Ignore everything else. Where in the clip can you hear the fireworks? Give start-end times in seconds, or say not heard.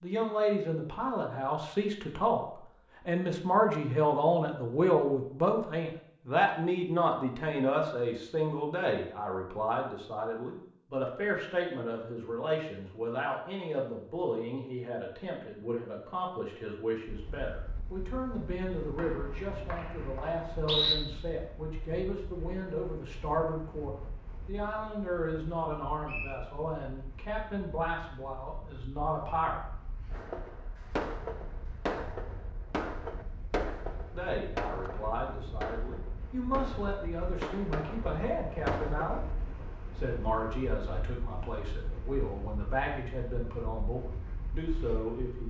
30.1-39.2.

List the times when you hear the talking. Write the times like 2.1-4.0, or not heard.
0.0-29.6, 34.1-39.2, 40.0-45.4.